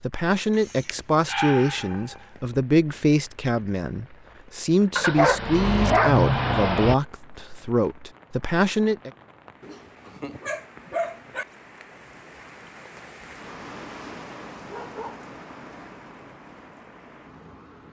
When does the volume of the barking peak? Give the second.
6 s.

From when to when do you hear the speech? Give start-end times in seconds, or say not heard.
0.0-9.1.